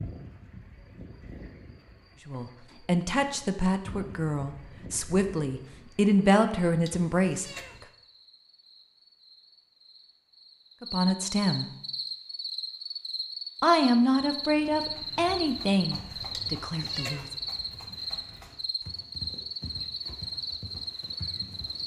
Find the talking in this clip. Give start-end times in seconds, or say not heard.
2.2-7.5, 10.8-11.7, 13.6-17.2.